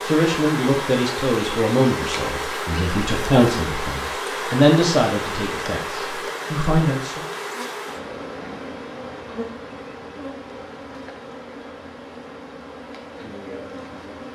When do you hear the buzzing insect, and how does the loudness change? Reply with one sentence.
You can hear the buzzing insect from 0.0 to 14.3 s, getting quieter.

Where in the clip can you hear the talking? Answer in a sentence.
The talking can be heard from 0.0 to 7.2 s.